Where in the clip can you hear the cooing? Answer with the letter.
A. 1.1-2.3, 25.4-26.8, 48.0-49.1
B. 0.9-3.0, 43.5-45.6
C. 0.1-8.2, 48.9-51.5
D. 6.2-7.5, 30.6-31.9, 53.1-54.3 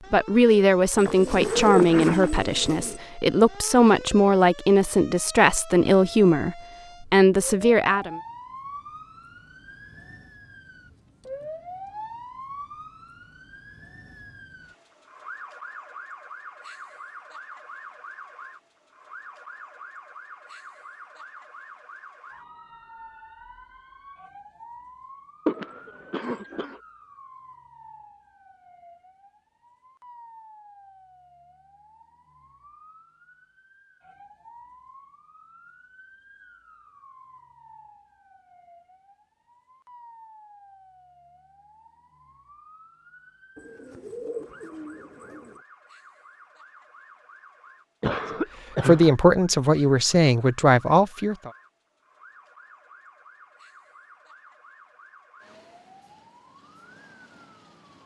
B.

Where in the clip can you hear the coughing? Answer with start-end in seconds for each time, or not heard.
1.1-2.3, 25.4-26.8, 48.0-49.1.